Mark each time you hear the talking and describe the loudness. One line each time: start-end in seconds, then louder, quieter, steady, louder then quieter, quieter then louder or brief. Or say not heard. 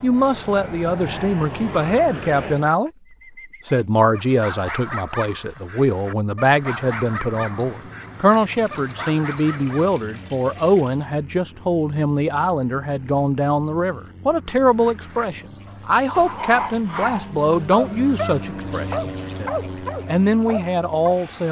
0.0-2.9 brief
3.6-21.4 steady.